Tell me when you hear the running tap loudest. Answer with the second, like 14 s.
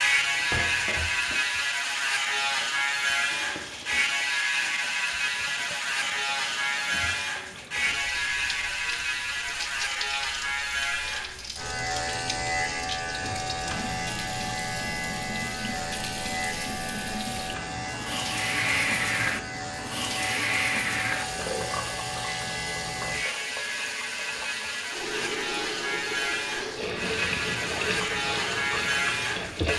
19 s.